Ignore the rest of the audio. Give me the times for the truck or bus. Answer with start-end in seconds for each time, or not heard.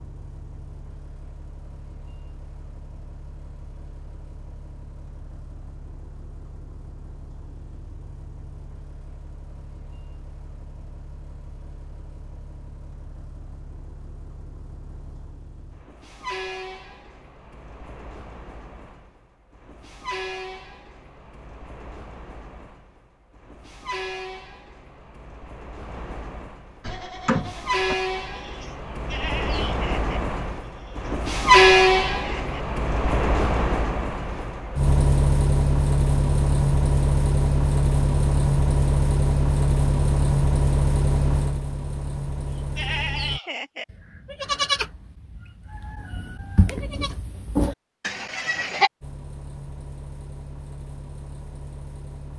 0.0-43.4, 49.0-52.3.